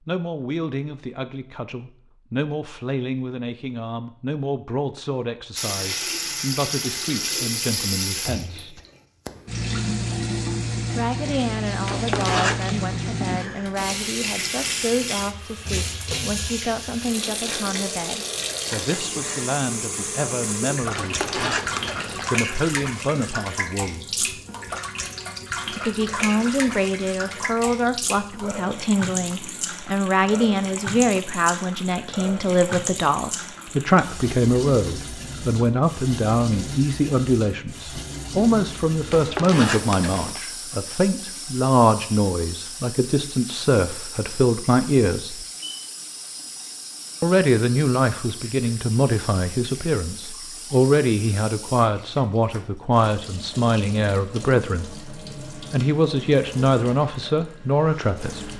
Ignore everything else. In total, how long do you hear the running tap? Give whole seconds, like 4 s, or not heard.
53 s.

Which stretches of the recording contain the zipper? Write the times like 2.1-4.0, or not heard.
11.8-12.8, 20.9-22.3, 39.1-40.4.